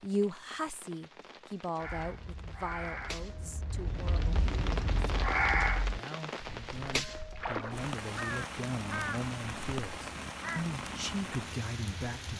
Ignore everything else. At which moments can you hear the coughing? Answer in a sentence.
You can't hear the coughing here.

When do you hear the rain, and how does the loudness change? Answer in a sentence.
The rain can be heard from 0.0 to 12.3 s, getting louder.